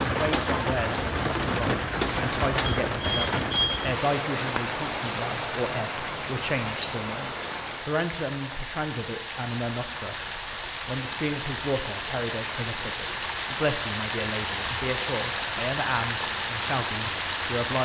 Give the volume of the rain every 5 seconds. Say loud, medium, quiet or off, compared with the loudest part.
loud, medium, loud, loud.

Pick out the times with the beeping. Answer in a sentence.
You can hear the beeping from 2.6 to 3.9 s.